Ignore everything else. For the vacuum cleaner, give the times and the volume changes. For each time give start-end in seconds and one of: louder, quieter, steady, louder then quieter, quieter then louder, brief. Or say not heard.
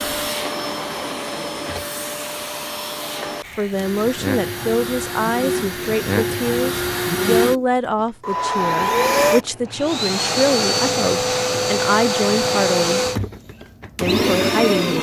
0.0-14.9 louder.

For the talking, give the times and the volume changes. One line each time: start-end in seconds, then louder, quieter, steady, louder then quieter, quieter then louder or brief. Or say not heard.
3.5-13.1 steady
14.0-14.9 brief.